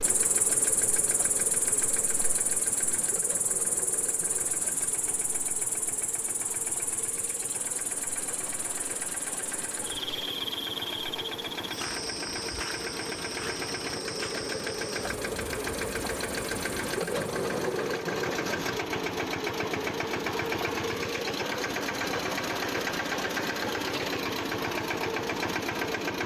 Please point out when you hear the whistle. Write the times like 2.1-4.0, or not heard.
not heard.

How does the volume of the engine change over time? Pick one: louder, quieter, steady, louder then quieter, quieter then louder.
louder.